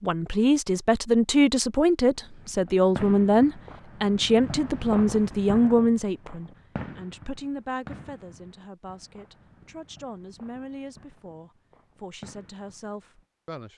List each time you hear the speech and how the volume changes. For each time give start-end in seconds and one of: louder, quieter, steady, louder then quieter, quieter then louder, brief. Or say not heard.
0.0-13.7 quieter.